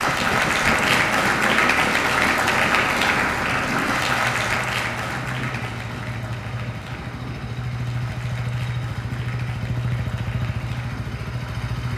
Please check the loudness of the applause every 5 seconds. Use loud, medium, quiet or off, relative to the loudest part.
loud, quiet, quiet.